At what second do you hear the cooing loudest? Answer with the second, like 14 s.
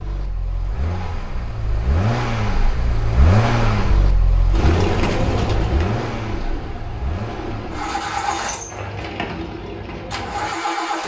5 s.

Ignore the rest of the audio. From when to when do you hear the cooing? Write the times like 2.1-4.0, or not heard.
4.5-10.6.